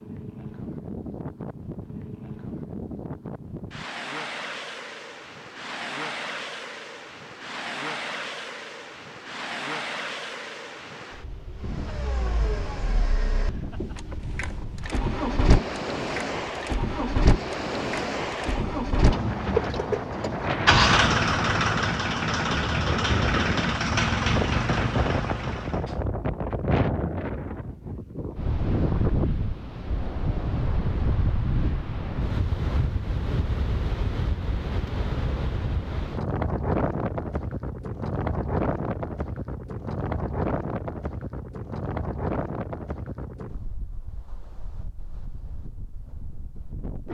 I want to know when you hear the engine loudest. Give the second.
21 s.